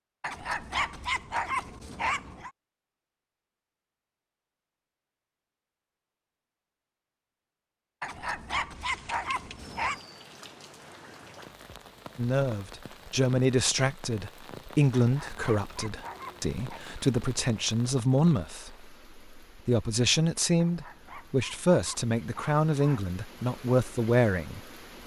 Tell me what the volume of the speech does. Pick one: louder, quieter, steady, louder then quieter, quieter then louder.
steady.